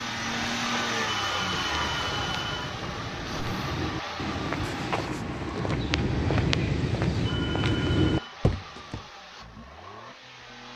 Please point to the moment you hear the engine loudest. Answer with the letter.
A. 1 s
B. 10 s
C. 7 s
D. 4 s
A.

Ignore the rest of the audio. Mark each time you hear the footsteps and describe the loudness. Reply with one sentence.
You can hear the footsteps from 0.0 to 9.0 s, getting louder.